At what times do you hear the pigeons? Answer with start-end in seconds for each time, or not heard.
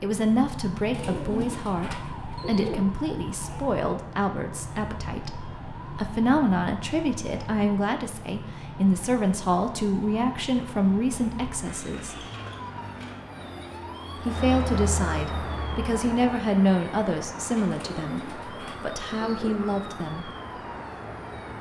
0.9-2.8, 17.7-19.6.